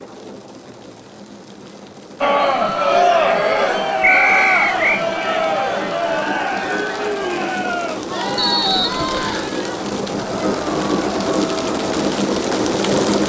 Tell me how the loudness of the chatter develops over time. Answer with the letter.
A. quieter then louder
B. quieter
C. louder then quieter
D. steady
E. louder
B.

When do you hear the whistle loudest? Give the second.
4 s.